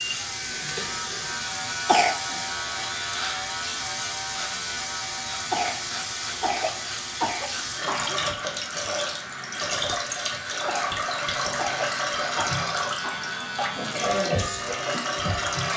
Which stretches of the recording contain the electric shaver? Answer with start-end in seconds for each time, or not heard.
0.0-15.7.